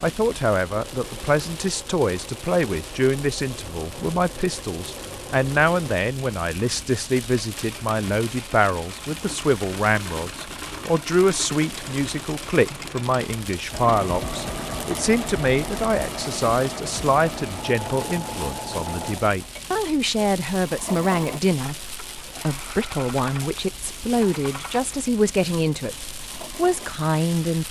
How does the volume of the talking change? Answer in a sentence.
The volume of the talking stays about the same.